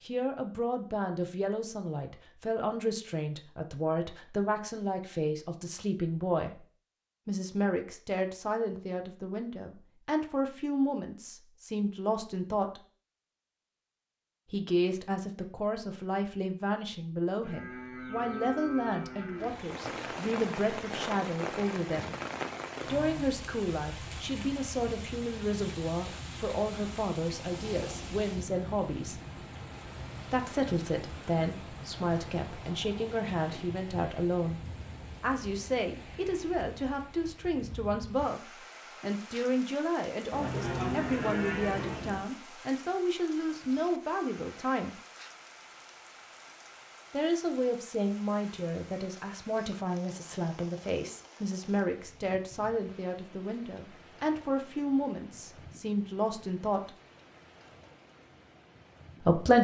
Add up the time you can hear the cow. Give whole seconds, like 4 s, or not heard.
4 s.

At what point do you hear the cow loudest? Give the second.
41 s.